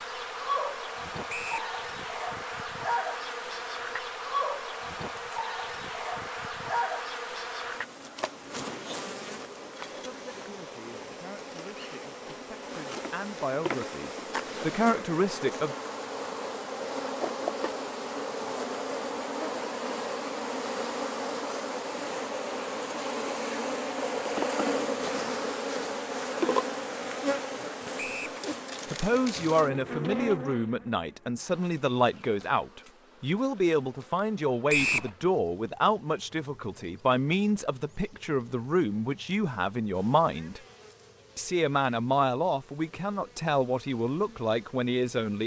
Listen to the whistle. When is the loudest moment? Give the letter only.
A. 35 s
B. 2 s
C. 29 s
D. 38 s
A.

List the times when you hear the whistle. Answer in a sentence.
You can hear the whistle from 1.2 to 1.7 s, from 27.9 to 28.4 s and from 34.6 to 35.1 s.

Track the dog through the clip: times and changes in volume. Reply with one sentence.
The dog can't be heard in this clip.